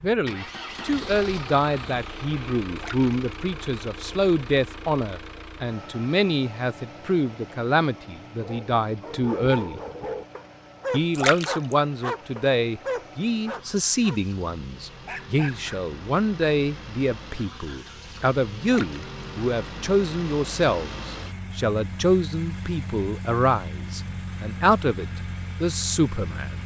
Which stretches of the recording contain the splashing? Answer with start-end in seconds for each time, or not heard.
2.8-3.4, 11.2-11.8, 18.6-19.1.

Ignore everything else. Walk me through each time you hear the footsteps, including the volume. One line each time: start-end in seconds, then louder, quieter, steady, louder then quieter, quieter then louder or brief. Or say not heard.
not heard.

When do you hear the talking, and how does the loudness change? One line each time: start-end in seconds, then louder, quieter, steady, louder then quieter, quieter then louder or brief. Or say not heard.
0.0-9.8 steady
10.9-26.6 steady.